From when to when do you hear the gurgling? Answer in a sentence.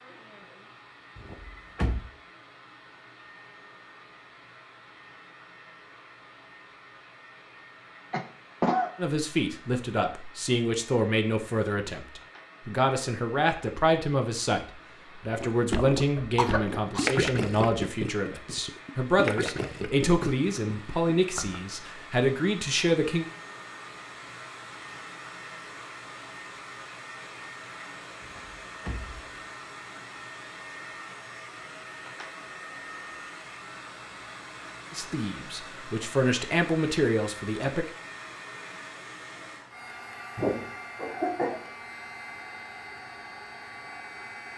The gurgling can be heard from 15.3 to 21.6 s.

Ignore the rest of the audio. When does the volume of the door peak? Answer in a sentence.
The loudest moment of the door is at 2 seconds.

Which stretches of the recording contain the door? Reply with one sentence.
You can hear the door from 1.1 to 2.0 s and from 28.2 to 29.2 s.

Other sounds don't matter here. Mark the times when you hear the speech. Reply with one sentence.
You can hear the speech from 8.9 to 23.2 s and from 34.9 to 37.9 s.